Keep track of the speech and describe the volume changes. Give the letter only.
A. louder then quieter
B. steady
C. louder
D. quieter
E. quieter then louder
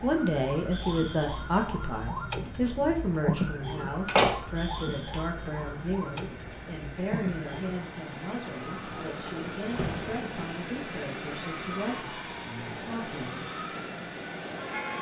D.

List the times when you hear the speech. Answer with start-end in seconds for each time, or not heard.
0.0-13.4.